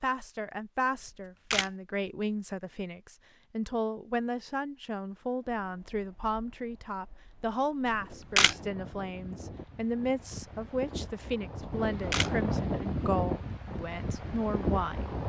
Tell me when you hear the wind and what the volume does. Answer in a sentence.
You can hear the wind from 5.4 to 15.2 s, getting louder.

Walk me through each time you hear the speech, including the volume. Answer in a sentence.
You can hear the speech from 0.0 to 15.2 s, at a steady volume.